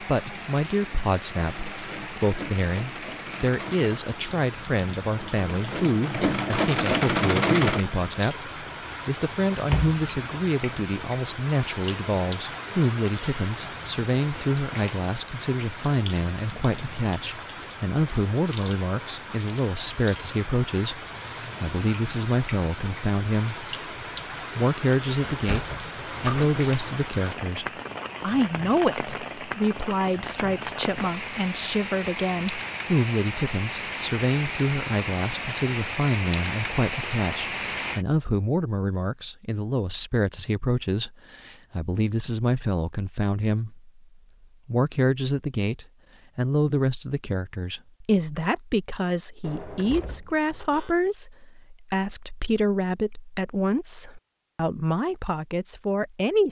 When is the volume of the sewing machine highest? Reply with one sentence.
The loudest moment of the sewing machine is at 7 seconds.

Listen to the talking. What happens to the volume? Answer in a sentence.
The volume of the talking stays about the same.